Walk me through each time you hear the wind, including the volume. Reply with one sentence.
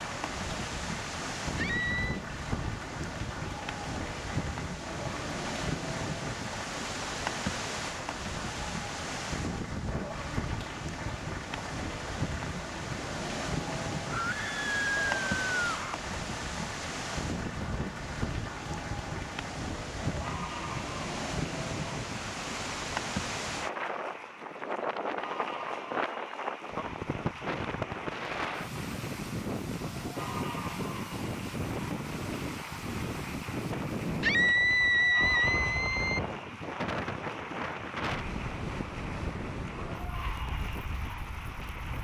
The wind can be heard from 0.0 to 41.9 s, at a steady volume.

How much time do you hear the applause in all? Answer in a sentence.
The applause can be heard for 42 seconds in total.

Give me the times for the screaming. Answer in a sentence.
The screaming can be heard from 1.6 to 2.2 s, from 14.1 to 15.9 s and from 34.2 to 36.2 s.